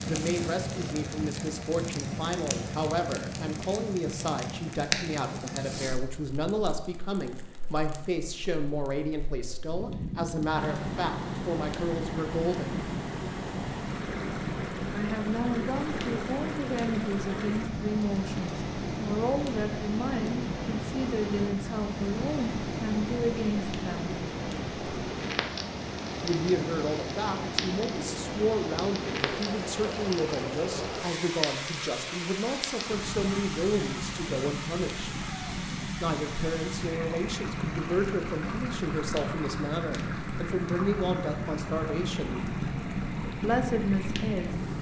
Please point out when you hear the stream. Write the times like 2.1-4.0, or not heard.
10.5-44.7.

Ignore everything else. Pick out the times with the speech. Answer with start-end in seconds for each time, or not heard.
0.0-12.9, 14.9-24.1, 26.2-35.1, 36.0-42.5, 43.4-44.5.